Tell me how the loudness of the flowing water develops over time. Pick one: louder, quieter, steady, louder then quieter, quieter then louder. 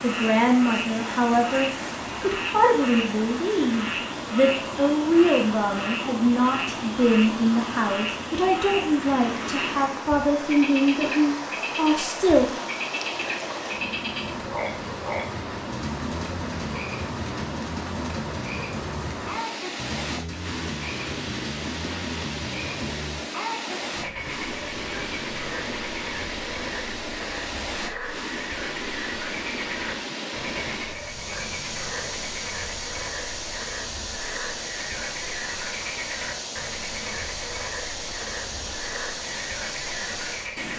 steady.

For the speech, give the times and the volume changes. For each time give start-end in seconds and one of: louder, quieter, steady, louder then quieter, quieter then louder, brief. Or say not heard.
0.0-12.6 steady.